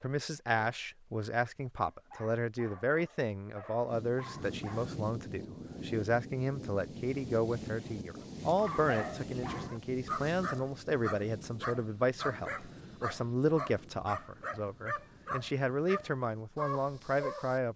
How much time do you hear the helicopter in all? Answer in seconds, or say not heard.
not heard.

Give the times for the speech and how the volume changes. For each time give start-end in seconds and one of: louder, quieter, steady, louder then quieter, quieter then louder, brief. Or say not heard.
0.0-17.7 steady.